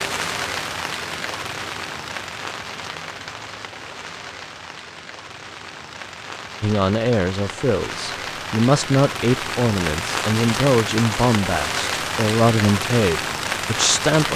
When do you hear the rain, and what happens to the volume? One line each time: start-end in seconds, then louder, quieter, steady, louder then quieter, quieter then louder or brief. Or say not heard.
0.0-14.3 quieter then louder.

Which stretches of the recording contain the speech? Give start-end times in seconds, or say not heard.
6.6-14.3.